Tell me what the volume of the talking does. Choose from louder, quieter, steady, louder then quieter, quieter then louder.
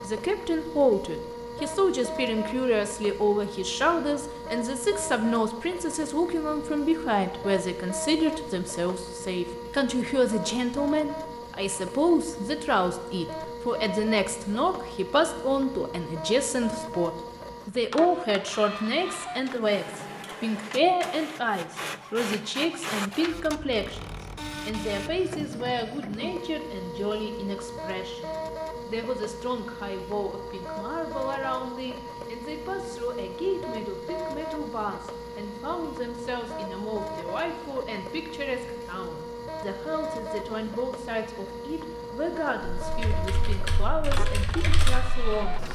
quieter.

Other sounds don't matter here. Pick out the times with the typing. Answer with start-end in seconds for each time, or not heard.
42.8-45.5.